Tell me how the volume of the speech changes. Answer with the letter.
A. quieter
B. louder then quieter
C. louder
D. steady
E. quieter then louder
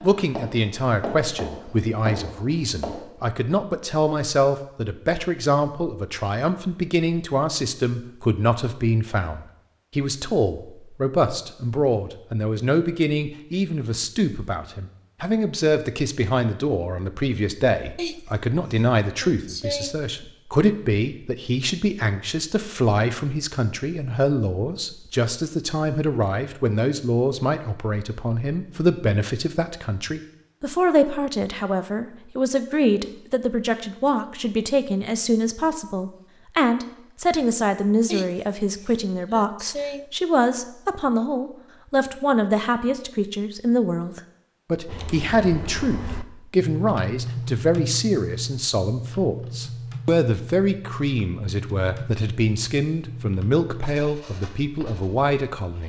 D.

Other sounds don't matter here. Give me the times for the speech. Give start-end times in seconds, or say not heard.
0.0-55.8.